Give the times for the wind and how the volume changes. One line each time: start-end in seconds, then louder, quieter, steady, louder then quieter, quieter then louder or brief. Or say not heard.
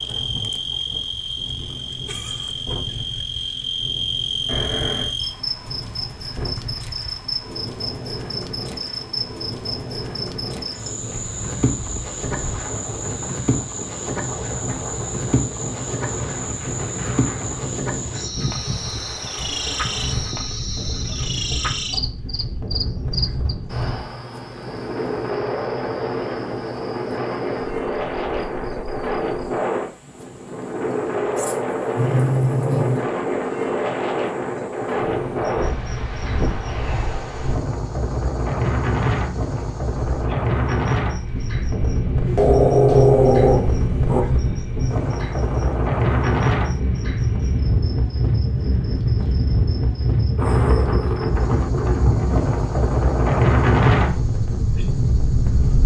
0.0-55.8 louder.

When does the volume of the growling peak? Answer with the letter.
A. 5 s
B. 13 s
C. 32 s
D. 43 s
D.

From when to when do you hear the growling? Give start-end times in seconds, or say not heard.
4.5-5.2, 31.4-33.0, 42.2-44.2.